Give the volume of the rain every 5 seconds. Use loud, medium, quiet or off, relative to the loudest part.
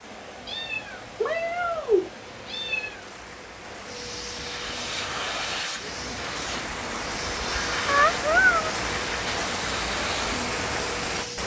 quiet, loud, loud.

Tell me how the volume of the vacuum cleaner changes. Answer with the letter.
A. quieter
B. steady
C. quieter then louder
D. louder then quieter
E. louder
E.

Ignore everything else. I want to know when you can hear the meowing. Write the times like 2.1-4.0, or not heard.
0.5-3.0, 7.8-8.8.